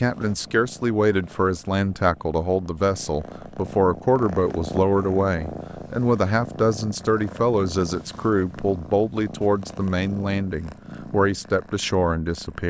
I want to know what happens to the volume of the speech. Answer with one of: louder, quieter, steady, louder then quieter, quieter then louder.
steady.